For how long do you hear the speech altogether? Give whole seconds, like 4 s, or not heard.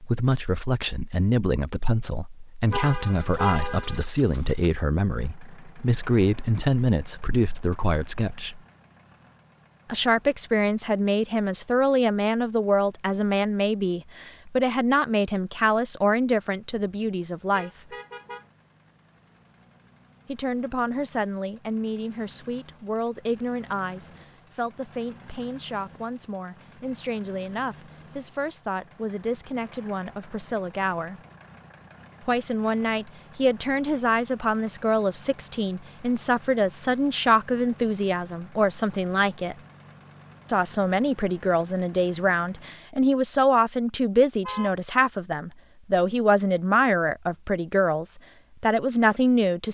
44 s.